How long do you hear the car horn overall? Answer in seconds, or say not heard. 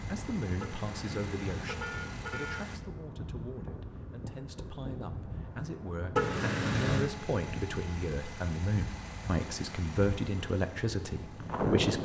3 s.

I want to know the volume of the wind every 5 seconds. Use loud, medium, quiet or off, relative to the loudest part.
medium, medium, loud.